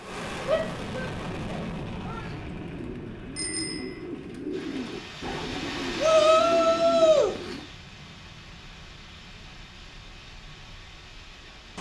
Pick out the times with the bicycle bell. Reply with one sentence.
You can hear the bicycle bell from 3.4 to 4.0 s.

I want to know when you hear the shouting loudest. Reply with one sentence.
The loudest moment of the shouting is at 6 seconds.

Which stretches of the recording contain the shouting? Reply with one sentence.
The shouting can be heard from 0.5 to 2.2 s and from 6.0 to 7.3 s.